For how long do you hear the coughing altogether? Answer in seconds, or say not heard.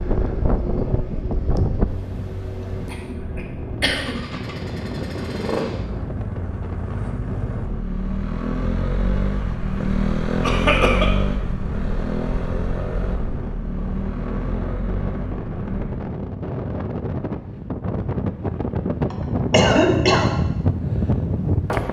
3 s.